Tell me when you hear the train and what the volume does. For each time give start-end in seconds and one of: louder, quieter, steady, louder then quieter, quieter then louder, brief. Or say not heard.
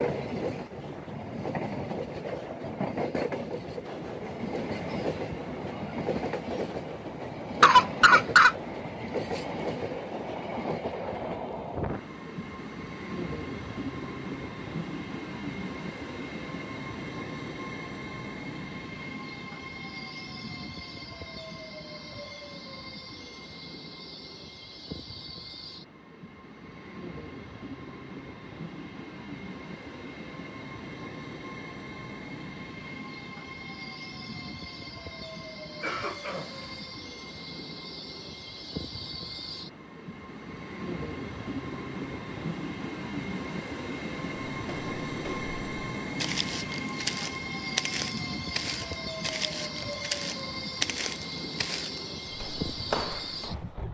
0.0-53.8 quieter then louder.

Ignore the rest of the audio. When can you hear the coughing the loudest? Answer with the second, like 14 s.
8 s.